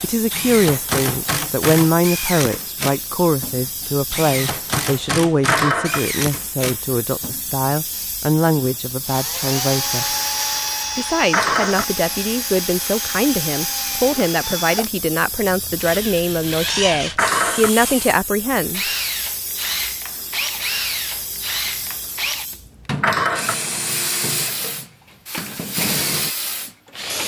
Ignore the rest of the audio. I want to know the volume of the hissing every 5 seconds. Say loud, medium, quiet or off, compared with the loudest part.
medium, loud, loud, loud, loud, loud.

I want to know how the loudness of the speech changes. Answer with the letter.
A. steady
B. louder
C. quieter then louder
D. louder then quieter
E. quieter
A.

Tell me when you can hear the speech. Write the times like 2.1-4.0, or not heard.
0.0-10.1, 10.9-18.9.